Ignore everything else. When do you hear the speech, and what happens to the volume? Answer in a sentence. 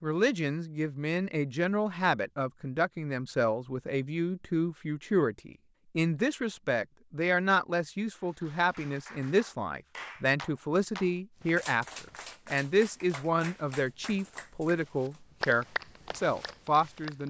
The speech can be heard from 0.0 to 17.2 s, at a steady volume.